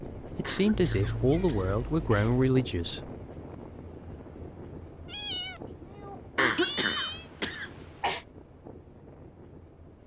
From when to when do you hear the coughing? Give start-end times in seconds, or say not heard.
0.4-2.4, 6.3-8.2.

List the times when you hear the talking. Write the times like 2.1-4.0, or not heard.
0.2-3.1.